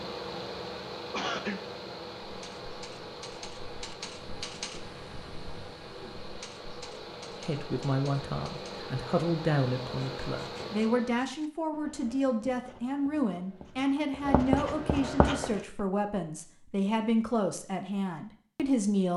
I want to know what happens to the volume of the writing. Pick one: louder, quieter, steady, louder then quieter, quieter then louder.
louder.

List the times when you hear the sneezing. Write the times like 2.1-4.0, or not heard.
1.1-1.6.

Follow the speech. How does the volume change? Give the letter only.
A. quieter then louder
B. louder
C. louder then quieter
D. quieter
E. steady
E.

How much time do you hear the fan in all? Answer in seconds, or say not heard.
11 s.